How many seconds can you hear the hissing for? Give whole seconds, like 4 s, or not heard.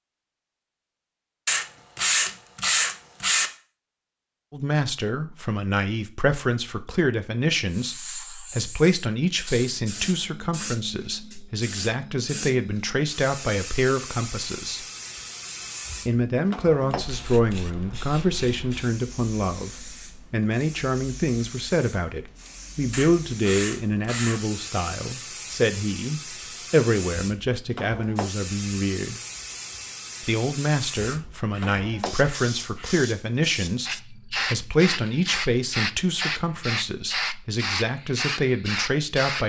32 s.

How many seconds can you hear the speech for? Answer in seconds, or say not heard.
33 s.